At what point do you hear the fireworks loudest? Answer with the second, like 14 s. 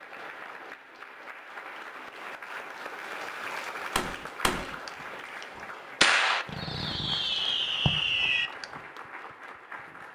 6 s.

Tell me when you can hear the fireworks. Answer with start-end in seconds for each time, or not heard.
4.0-8.7.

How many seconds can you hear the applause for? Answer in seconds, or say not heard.
10 s.